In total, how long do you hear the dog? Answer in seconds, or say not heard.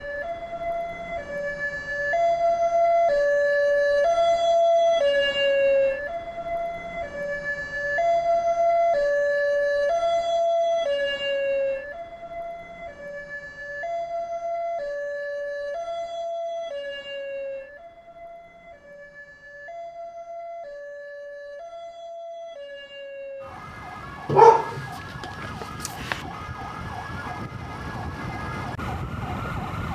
2 s.